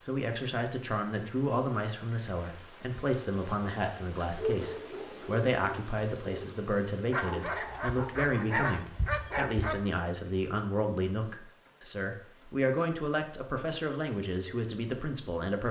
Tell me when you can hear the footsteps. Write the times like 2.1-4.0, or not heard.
not heard.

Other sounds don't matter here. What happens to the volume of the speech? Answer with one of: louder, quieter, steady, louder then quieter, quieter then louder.
steady.